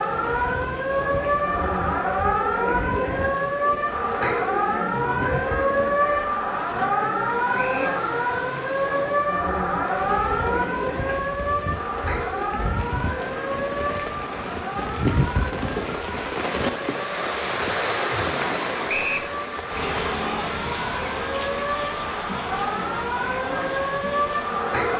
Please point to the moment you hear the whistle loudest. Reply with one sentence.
The volume of the whistle peaks at 19 seconds.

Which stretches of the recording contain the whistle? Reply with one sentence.
The whistle can be heard from 7.5 to 8.0 s and from 18.9 to 19.3 s.